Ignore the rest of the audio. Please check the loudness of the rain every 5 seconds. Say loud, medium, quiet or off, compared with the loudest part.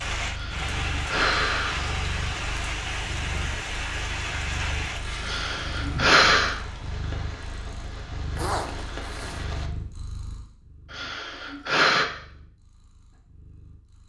loud, medium, off.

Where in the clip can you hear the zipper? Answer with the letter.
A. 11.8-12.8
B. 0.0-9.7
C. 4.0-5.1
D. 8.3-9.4
D.